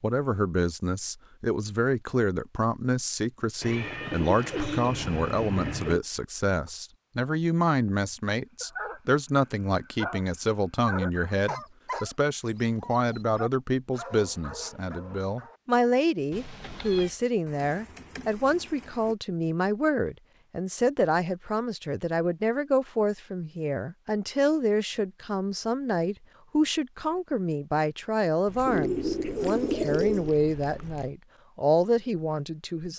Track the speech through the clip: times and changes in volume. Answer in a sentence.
The speech can be heard from 0.0 to 32.9 s, at a steady volume.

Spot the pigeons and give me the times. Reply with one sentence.
You can hear the pigeons from 3.6 to 6.0 s, from 17.4 to 19.1 s and from 28.6 to 30.4 s.